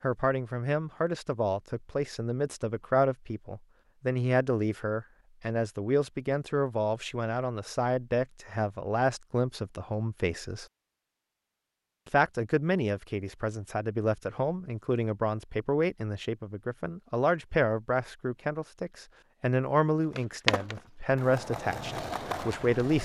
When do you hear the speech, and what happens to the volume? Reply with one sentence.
The speech can be heard from 0.0 to 10.7 s, at a steady volume; and from 12.1 to 22.9 s, at a steady volume.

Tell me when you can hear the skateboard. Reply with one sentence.
You can hear the skateboard from 20.1 to 22.9 s.